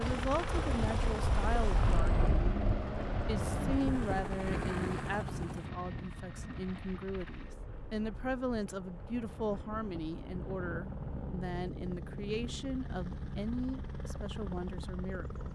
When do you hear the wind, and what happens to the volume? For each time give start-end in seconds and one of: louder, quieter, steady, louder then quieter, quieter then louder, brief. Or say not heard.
0.0-11.4 quieter then louder.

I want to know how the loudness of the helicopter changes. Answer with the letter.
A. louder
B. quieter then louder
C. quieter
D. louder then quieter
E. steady
B.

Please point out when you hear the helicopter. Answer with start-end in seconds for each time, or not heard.
0.0-15.4.